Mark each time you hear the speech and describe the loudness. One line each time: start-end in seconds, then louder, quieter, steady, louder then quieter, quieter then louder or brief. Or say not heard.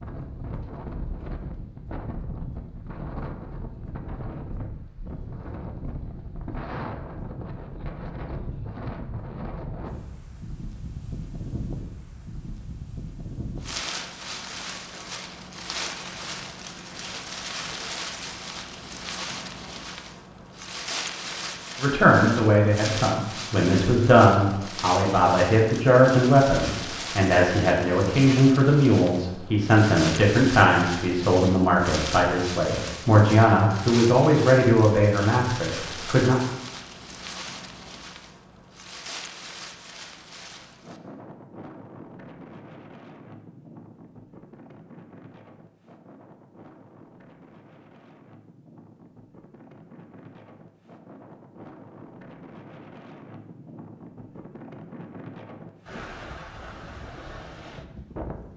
21.8-36.4 steady.